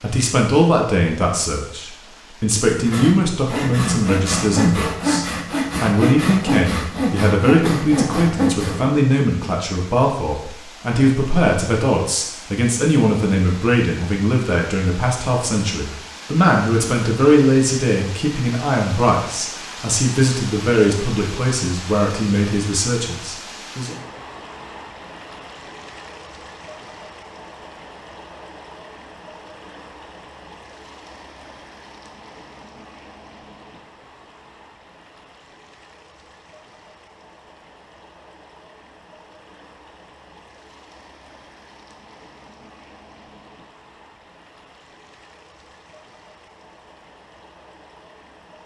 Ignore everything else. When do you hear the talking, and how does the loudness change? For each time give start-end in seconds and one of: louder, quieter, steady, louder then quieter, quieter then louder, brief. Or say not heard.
0.0-23.9 steady.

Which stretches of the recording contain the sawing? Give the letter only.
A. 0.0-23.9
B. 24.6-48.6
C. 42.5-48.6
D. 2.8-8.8
D.